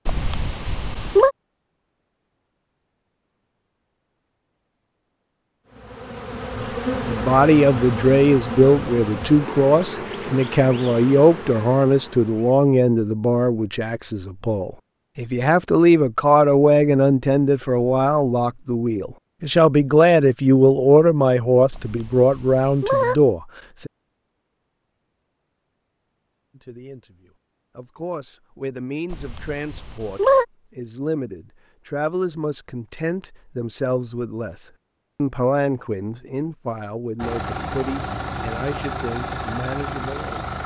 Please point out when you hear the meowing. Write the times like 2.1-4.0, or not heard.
0.1-1.3, 21.7-23.1, 29.1-30.4.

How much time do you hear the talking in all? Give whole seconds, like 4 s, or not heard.
31 s.